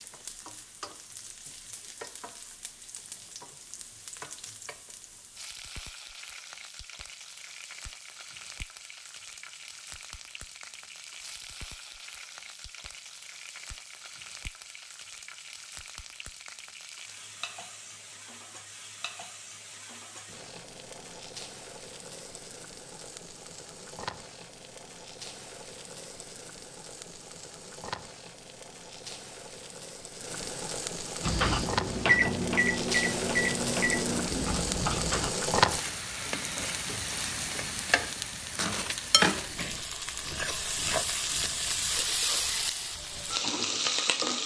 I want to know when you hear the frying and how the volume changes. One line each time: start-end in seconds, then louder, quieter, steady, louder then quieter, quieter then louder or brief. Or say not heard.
0.0-44.4 louder.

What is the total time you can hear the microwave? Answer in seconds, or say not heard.
4 s.